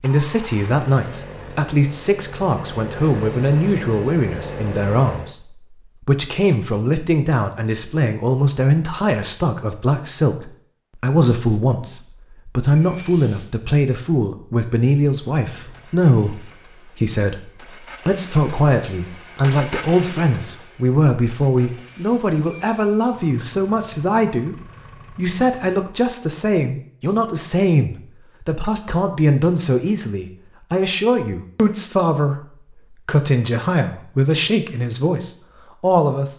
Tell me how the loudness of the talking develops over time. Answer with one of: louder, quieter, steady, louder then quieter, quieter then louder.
steady.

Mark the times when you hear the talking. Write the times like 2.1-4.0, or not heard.
0.0-36.3.